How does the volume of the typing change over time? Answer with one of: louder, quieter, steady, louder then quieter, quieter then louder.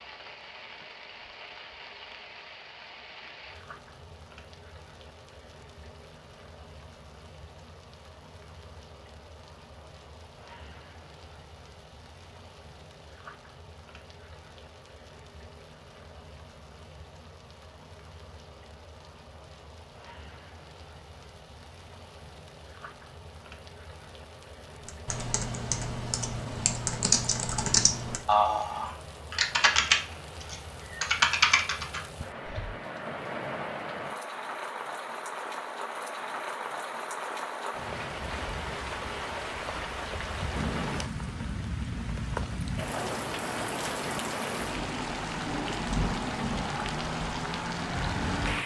louder.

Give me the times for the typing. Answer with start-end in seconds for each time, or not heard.
24.9-32.7.